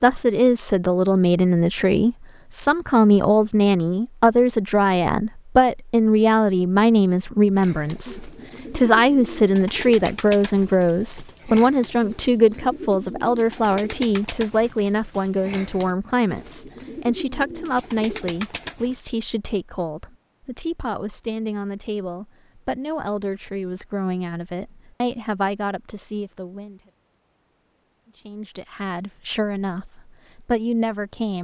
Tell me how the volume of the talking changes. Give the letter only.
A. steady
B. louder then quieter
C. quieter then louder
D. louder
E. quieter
E.